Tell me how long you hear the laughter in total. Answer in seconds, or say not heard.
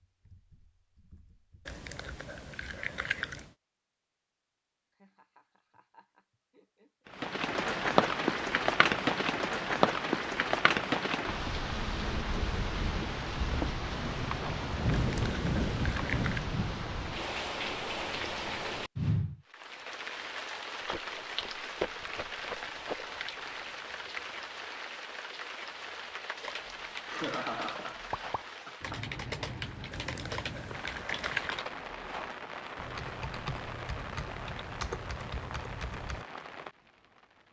5 s.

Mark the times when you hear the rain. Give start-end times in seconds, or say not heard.
7.1-37.4.